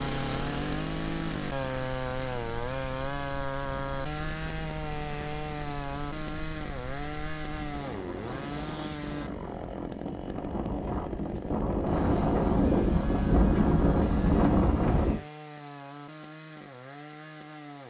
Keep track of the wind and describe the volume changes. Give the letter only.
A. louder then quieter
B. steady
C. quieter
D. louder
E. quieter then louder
D.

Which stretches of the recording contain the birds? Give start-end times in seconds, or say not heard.
not heard.